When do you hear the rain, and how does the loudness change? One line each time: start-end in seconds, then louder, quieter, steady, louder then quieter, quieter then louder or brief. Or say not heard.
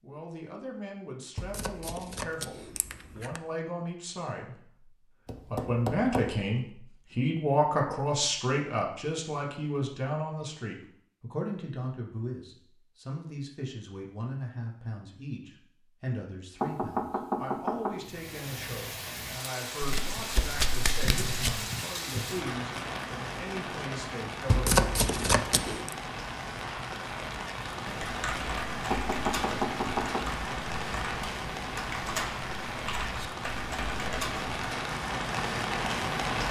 17.9-36.4 steady.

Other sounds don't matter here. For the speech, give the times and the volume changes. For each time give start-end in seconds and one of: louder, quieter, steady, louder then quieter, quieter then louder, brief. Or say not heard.
0.0-24.8 louder then quieter.